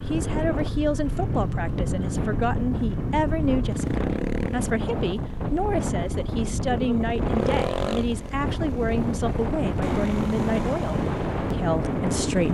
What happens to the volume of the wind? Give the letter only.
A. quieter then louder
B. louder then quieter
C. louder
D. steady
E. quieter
D.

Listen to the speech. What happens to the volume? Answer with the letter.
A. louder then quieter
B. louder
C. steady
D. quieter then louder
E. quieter
C.